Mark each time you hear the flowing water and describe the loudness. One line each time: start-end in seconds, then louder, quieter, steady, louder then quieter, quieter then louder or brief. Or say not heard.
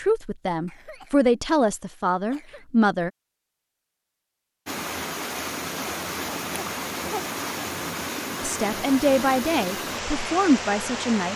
4.7-11.3 steady.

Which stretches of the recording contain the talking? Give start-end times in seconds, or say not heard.
0.0-3.1, 8.4-11.3.